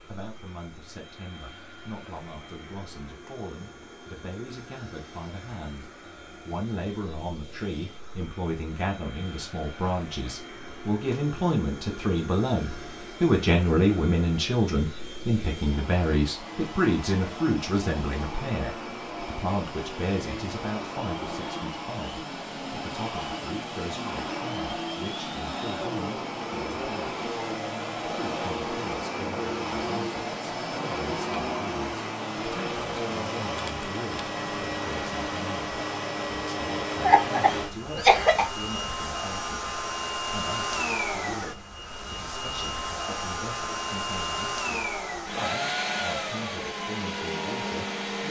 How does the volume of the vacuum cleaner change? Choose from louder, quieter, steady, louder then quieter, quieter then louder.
louder.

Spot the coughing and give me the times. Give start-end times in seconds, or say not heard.
37.0-38.5.